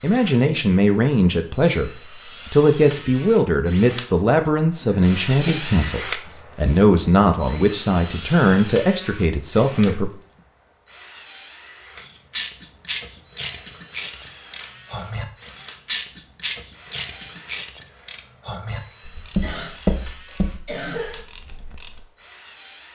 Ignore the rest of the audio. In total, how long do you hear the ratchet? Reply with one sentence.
The ratchet can be heard for 10 seconds in total.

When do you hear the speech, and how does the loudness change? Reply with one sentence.
You can hear the speech from 0.0 to 10.2 s, at a steady volume.